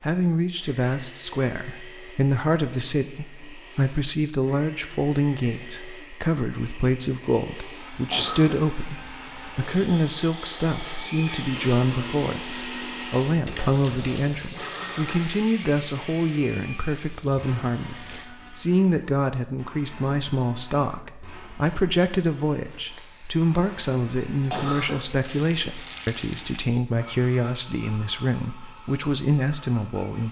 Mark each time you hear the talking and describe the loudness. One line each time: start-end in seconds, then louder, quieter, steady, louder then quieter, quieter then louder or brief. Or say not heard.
0.0-30.2 steady.